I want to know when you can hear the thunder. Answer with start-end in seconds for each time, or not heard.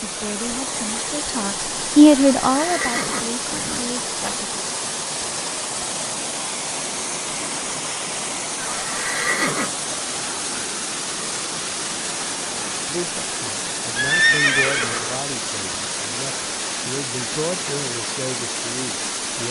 not heard.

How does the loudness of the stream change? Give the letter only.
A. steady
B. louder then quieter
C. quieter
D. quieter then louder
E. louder
A.